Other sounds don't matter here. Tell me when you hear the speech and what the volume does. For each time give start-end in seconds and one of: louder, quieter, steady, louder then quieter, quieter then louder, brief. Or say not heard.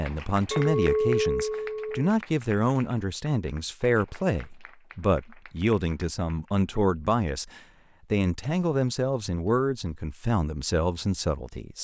0.0-11.7 steady.